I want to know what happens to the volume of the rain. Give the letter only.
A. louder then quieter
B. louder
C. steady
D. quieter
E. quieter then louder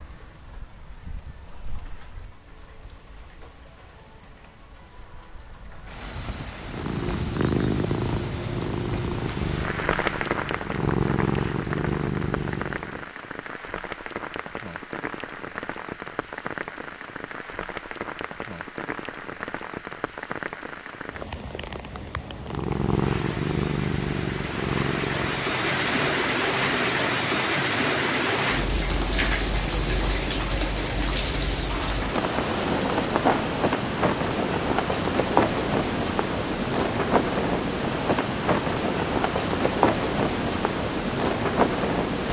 B.